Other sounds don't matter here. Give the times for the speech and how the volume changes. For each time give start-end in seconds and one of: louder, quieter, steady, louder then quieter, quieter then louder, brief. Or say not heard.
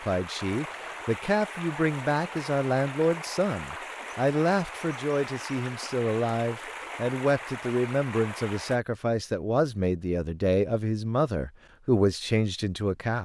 0.0-13.2 steady.